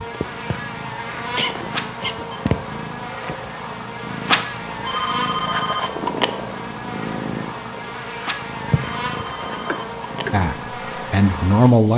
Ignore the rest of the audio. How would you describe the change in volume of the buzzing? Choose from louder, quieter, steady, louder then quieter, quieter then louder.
steady.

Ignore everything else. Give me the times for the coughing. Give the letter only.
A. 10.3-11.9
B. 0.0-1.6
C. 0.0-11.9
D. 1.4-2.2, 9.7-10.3
D.